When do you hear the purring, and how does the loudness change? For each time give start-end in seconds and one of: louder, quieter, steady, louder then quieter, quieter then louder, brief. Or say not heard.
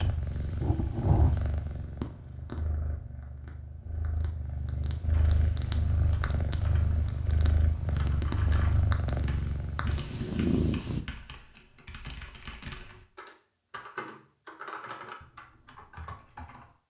0.0-11.1 quieter then louder.